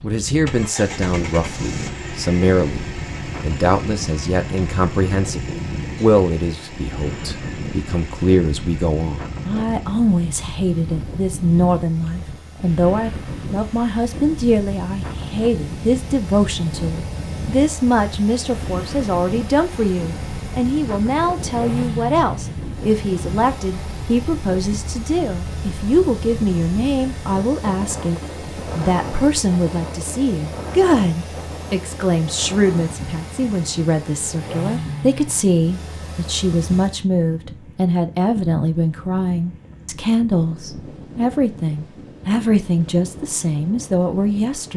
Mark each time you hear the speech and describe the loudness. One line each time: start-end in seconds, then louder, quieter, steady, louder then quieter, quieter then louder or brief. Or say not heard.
0.0-44.7 steady.